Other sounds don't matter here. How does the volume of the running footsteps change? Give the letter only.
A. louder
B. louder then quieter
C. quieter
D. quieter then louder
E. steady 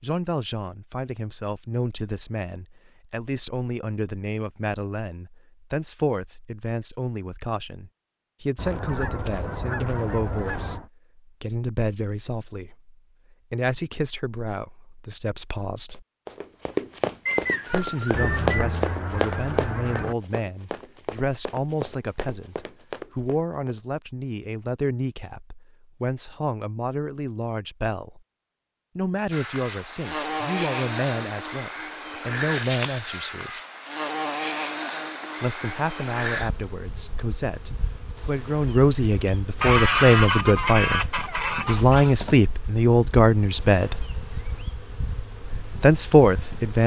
C.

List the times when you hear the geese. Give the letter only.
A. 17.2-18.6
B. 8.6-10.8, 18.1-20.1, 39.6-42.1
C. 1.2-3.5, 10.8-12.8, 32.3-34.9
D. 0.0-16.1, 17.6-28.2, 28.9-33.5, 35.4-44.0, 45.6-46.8
B.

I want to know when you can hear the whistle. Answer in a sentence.
You can hear the whistle from 17.2 to 18.6 s.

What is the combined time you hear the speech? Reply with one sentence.
The speech can be heard for 41 seconds in total.